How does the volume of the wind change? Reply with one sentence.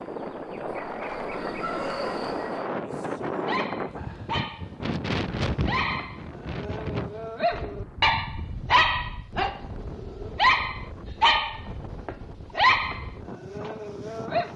The loudness of the wind goes down.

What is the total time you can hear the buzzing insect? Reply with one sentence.
You can hear the buzzing insect for 3 seconds altogether.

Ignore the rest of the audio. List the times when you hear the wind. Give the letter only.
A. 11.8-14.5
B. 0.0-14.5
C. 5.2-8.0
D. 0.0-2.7
B.